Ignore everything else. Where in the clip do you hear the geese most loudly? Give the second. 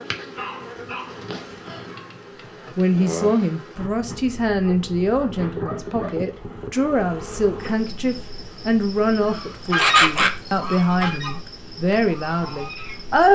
10 s.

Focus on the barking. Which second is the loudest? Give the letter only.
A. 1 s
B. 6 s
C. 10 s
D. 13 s
C.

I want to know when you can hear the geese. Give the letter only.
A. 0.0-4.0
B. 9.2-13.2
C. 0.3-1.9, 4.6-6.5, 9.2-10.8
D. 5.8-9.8
B.